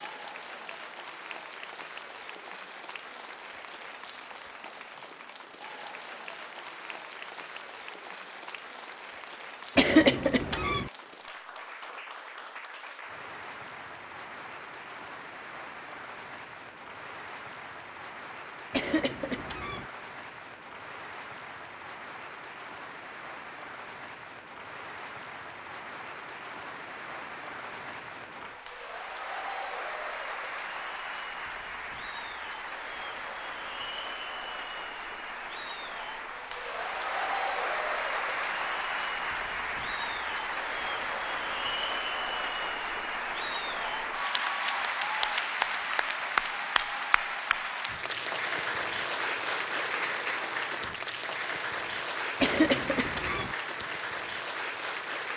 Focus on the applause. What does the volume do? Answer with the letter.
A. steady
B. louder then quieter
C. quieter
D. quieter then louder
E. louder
E.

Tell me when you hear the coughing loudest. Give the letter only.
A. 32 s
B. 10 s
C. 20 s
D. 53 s
B.